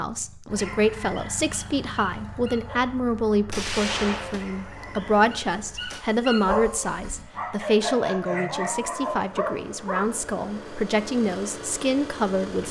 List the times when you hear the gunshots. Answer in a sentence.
You can hear the gunshots from 3.5 to 6.0 s.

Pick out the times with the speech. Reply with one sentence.
The speech can be heard from 0.0 to 12.6 s.